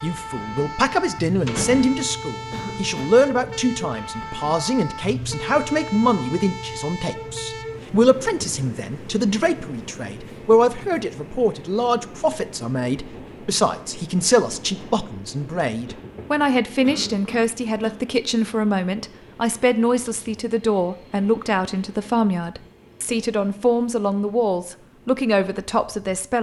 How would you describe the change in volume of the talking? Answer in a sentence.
The loudness of the talking stays about the same.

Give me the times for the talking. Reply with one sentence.
You can hear the talking from 0.0 to 26.3 s.